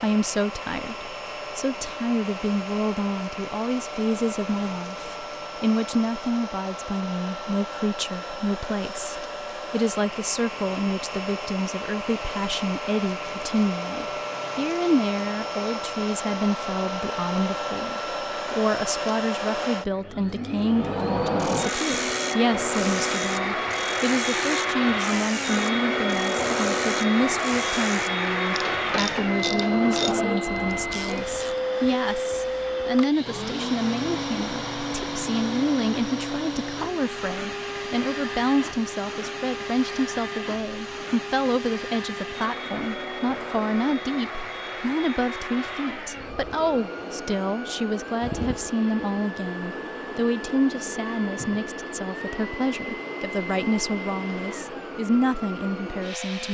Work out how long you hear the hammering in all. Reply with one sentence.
You can't hear the hammering here.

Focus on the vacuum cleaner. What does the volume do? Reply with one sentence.
The loudness of the vacuum cleaner goes up, then down.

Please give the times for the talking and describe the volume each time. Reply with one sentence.
The talking can be heard from 0.0 to 56.4 s, at a steady volume.